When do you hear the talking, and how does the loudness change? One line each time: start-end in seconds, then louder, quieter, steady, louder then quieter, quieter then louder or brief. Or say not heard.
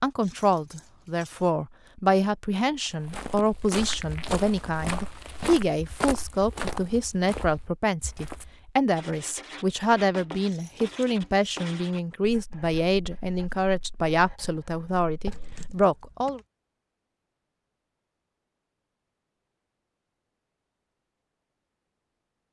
0.0-16.4 steady.